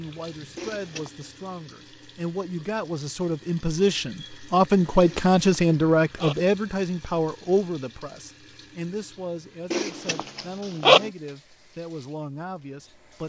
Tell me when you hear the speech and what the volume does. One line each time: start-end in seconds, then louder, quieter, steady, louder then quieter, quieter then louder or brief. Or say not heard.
0.0-13.2 louder then quieter.